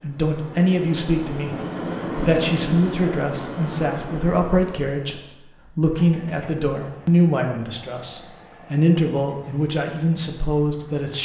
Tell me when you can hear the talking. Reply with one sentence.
You can hear the talking from 0.0 to 11.2 s.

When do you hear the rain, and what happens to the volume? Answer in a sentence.
You can't hear the rain here.